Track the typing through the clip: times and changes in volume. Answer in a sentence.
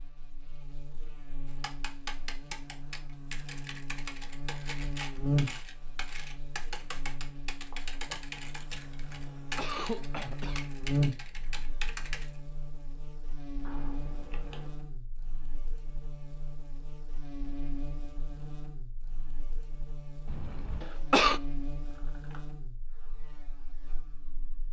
The typing can be heard from 1.4 to 12.4 s, at a steady volume.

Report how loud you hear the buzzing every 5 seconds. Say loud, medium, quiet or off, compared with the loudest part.
medium, loud, loud, medium, medium.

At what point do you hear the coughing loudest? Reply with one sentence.
The volume of the coughing peaks at 21 seconds.